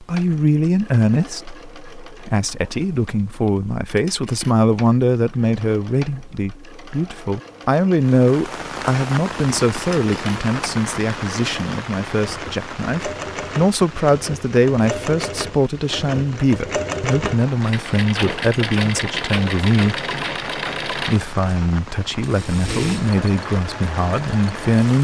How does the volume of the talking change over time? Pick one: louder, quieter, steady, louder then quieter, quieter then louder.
steady.